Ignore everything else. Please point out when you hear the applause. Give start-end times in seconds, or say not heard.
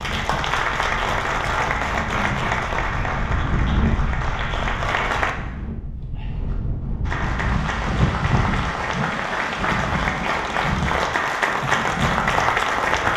0.0-5.3, 7.0-13.1.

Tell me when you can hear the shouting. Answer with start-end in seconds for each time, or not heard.
not heard.